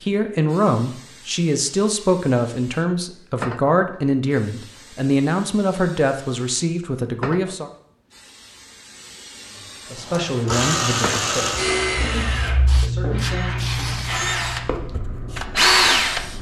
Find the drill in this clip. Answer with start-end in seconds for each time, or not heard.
10.1-16.3.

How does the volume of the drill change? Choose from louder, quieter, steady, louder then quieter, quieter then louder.
quieter then louder.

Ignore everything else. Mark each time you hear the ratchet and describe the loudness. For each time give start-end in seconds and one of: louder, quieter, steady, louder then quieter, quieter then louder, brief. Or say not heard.
not heard.